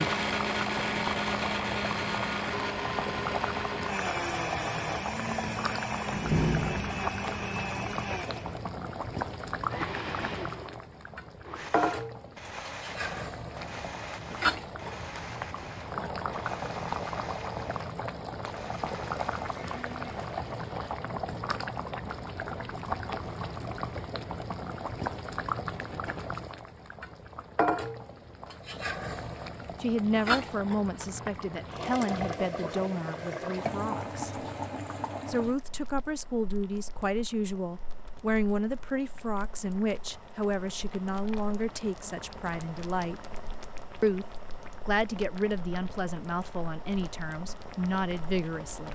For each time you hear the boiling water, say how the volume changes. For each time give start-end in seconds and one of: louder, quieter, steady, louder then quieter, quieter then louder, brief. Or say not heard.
0.0-48.9 quieter.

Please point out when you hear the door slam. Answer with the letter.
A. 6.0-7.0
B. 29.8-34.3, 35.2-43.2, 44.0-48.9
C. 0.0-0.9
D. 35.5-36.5
A.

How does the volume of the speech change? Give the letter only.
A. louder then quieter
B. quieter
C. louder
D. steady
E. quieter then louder
D.